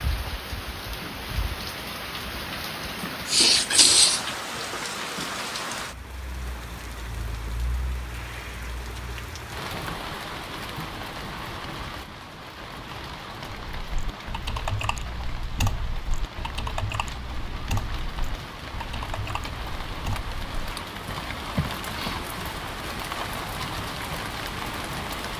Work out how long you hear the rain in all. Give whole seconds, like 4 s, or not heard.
25 s.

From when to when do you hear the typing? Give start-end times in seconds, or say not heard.
13.4-22.1.